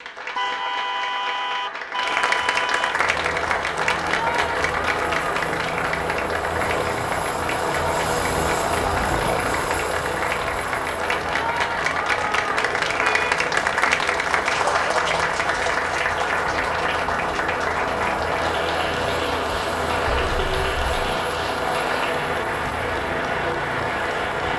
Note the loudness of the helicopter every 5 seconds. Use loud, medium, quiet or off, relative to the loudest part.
medium, loud, medium, loud, loud.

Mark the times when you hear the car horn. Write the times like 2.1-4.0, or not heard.
0.3-3.0, 13.0-13.4, 20.1-20.9.